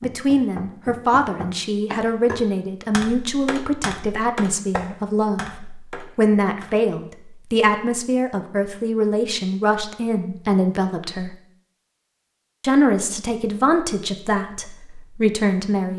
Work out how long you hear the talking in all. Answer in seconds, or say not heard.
15 s.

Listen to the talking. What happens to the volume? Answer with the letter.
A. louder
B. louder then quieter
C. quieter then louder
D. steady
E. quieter
D.